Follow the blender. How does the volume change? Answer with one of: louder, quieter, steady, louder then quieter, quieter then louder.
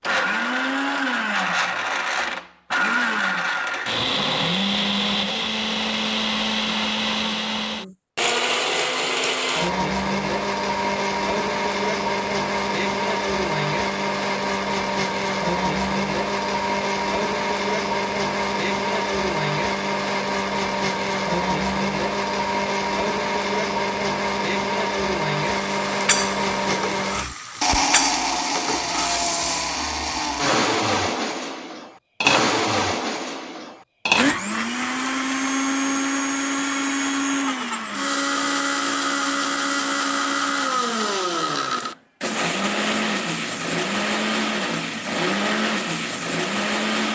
steady.